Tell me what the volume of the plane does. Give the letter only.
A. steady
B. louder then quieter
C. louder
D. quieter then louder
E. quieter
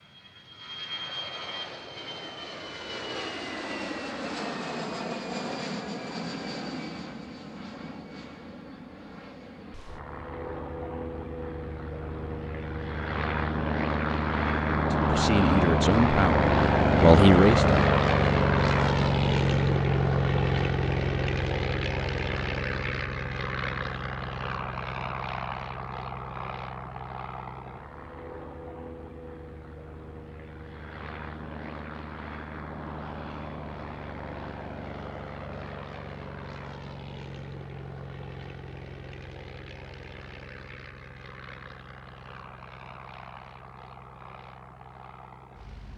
B.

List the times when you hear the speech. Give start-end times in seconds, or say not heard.
14.9-17.8.